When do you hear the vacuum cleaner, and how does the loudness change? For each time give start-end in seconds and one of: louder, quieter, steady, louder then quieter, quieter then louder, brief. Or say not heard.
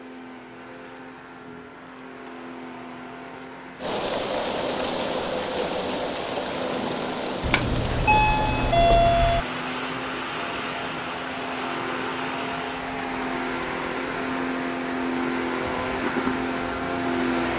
0.0-17.5 louder.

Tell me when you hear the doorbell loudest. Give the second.
9 s.